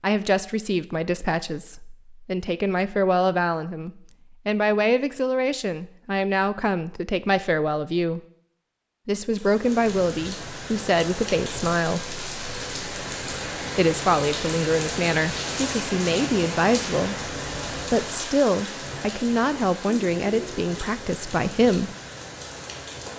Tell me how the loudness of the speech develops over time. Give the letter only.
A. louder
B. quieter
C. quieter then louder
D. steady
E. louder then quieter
D.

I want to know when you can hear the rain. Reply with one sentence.
You can hear the rain from 9.2 to 23.1 s.